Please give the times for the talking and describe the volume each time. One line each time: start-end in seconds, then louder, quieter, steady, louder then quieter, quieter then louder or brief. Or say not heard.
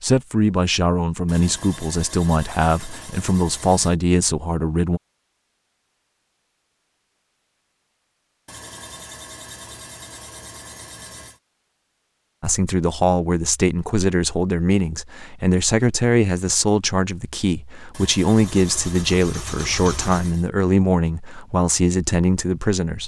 0.0-5.0 steady
12.4-23.0 steady.